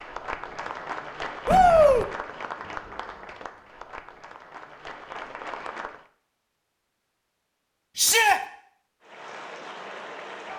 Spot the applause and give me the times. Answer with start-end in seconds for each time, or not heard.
0.0-6.0, 9.0-10.5.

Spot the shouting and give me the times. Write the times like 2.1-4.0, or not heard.
1.4-2.0, 8.0-8.4.